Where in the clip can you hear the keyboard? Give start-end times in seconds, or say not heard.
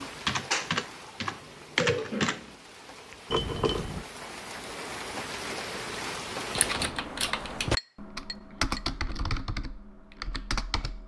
0.0-2.5, 6.5-11.0.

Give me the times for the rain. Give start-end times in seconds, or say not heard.
0.0-6.8.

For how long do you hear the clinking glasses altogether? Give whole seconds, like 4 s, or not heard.
2 s.